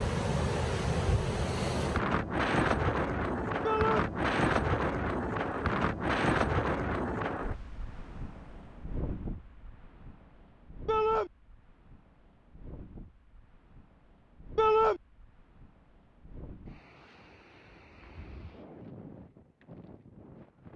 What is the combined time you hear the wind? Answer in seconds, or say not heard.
21 s.